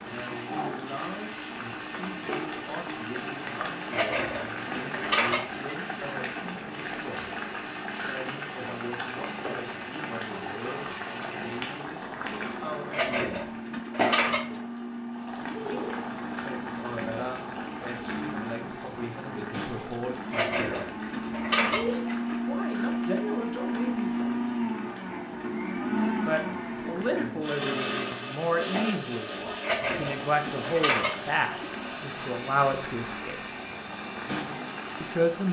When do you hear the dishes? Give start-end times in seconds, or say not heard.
3.9-6.0, 12.9-14.6, 20.3-22.4, 29.6-31.8.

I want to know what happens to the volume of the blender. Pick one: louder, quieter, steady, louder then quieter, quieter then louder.
louder then quieter.